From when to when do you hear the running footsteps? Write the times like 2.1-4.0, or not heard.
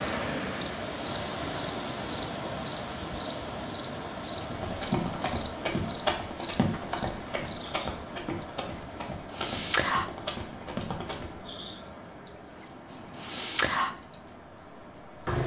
4.4-11.3.